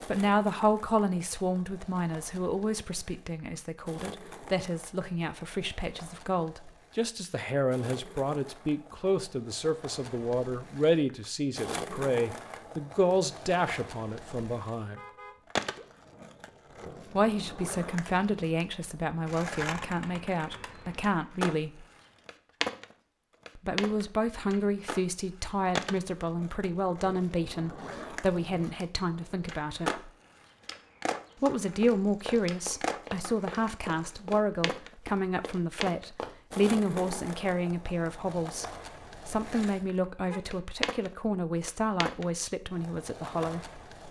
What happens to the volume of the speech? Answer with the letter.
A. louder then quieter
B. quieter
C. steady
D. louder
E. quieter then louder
C.